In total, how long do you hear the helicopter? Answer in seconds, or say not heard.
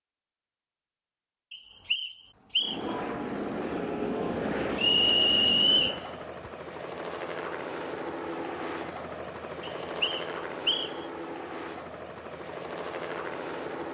11 s.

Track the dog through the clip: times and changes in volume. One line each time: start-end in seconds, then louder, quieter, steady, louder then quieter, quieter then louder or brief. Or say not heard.
not heard.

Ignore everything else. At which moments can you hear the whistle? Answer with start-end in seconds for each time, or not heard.
1.5-2.8, 4.8-6.0, 9.6-11.1.